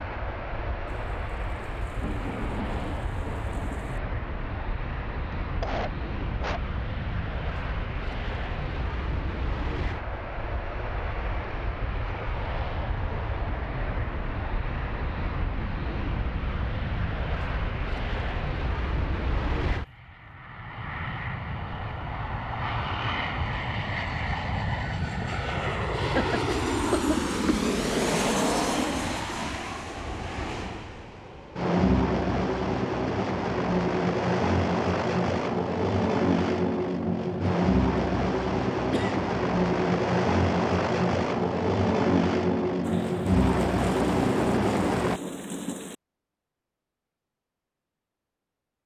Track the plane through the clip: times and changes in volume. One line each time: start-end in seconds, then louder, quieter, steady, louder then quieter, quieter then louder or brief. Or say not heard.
0.0-45.2 louder.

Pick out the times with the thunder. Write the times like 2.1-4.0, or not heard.
0.8-4.0, 42.8-46.0.